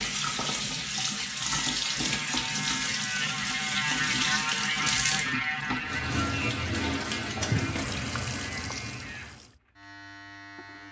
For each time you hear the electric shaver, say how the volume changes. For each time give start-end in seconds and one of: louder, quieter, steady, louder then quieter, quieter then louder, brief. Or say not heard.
0.0-10.8 louder then quieter.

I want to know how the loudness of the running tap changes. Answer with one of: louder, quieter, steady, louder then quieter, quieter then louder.
steady.